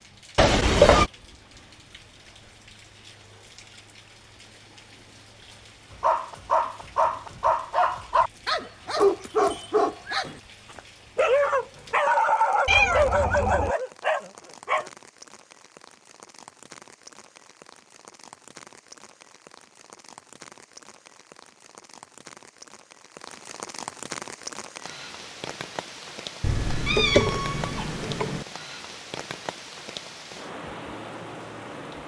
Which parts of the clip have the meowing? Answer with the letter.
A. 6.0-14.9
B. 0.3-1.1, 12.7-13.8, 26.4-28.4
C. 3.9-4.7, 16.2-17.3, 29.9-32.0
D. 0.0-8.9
B.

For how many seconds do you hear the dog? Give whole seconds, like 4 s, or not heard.
9 s.